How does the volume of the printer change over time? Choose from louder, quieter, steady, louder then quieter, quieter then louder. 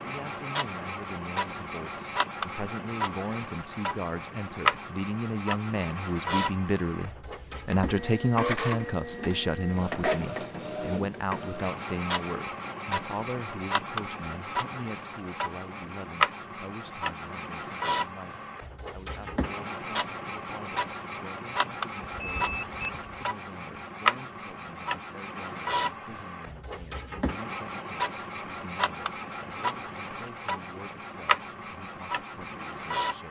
steady.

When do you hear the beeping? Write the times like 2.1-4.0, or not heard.
22.1-23.3.